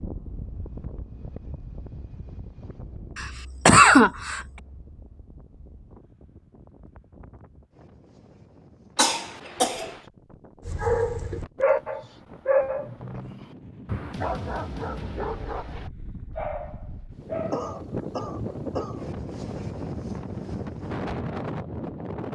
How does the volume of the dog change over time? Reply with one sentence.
The loudness of the dog goes down.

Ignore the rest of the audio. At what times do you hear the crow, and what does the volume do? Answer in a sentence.
The crow can't be heard in this clip.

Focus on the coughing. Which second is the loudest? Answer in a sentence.
The volume of the coughing peaks at 4 seconds.